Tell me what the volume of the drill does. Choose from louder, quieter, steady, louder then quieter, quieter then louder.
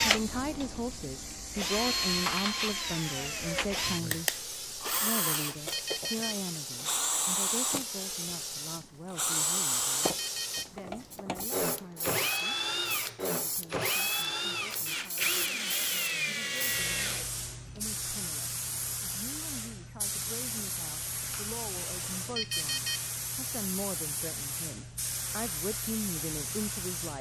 steady.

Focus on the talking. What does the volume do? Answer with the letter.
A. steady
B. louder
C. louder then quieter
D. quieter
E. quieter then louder
E.